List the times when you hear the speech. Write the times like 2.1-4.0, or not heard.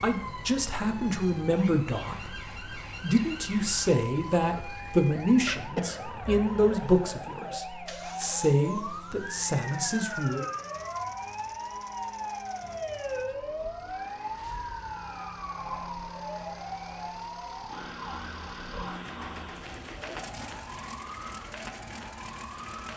0.0-2.4, 3.0-10.4.